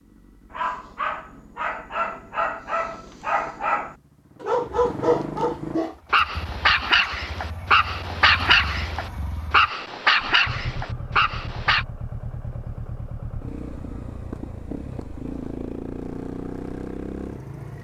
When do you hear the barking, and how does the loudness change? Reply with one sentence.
You can hear the barking from 0.5 to 11.8 s, getting louder.